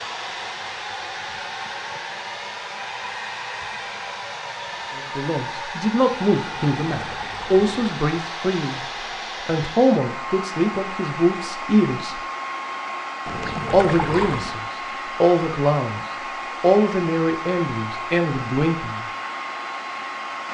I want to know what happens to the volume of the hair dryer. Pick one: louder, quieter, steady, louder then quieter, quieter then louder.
steady.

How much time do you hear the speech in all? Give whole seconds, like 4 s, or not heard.
12 s.